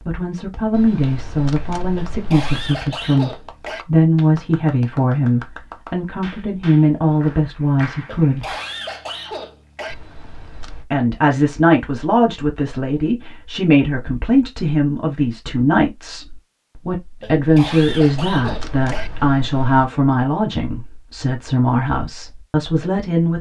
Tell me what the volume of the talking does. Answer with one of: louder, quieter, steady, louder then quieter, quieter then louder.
steady.